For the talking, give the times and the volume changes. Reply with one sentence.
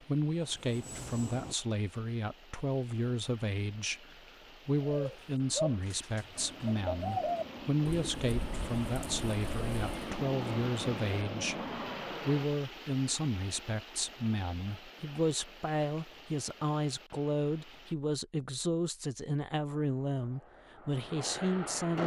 You can hear the talking from 0.1 to 22.0 s, at a steady volume.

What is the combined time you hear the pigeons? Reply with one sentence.
You can hear the pigeons for 5 seconds altogether.